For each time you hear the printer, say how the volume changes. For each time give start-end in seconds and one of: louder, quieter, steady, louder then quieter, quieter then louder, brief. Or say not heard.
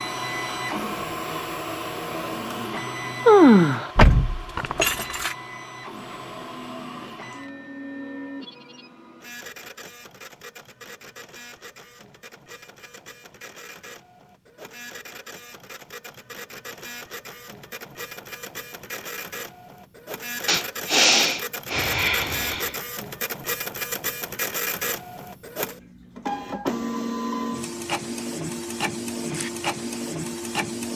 0.0-30.9 quieter then louder.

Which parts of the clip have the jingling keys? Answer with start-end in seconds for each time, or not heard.
4.0-5.3.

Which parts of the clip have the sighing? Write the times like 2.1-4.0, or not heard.
3.2-3.9, 20.4-22.7.